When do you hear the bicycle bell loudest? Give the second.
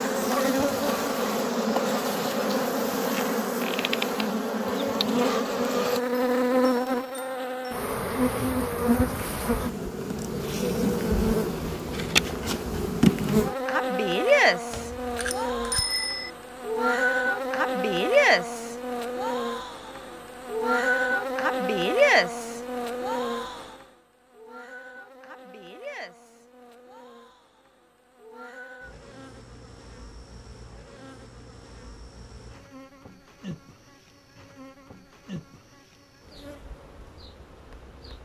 16 s.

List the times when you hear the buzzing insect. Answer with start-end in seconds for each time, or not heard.
0.0-38.2.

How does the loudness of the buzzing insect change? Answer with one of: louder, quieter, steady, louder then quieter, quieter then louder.
quieter.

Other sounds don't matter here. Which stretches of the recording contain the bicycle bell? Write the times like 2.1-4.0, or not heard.
14.7-16.3.